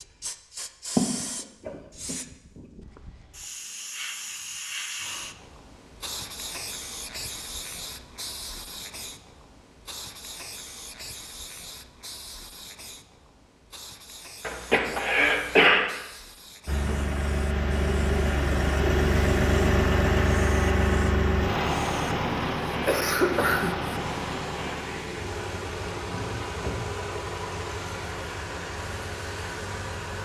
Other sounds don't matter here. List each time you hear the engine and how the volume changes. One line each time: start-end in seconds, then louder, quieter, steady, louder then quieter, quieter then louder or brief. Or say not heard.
16.6-30.2 quieter.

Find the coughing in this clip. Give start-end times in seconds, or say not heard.
0.9-2.1, 14.4-15.9, 22.1-23.9.